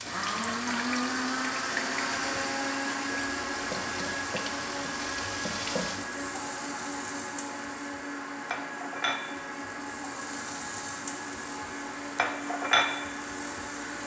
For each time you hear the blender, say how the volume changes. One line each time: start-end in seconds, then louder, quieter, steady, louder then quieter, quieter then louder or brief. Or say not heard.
0.0-14.0 quieter.